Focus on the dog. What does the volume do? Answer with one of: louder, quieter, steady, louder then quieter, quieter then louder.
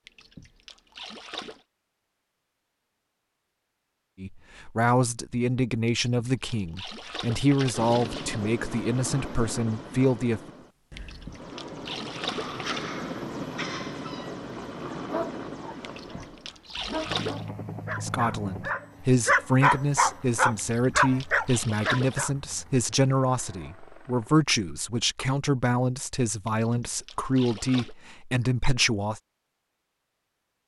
louder.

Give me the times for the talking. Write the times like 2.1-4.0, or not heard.
4.2-10.4, 18.0-29.2.